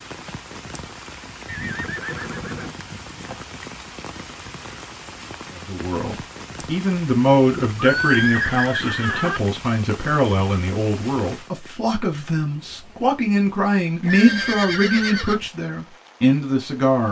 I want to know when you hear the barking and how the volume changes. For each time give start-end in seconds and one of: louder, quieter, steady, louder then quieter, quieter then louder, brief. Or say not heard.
not heard.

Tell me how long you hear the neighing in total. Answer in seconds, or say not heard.
5 s.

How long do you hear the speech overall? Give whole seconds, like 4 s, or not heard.
11 s.